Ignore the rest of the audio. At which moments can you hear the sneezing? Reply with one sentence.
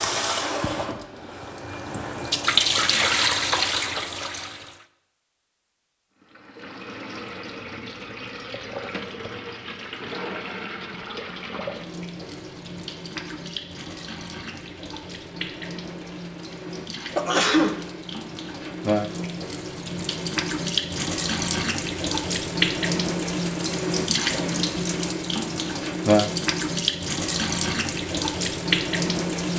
The sneezing can be heard from 17.1 to 17.8 s.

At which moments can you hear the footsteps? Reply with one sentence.
The footsteps can't be heard in this clip.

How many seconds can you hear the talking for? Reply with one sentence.
The talking can't be heard in this clip.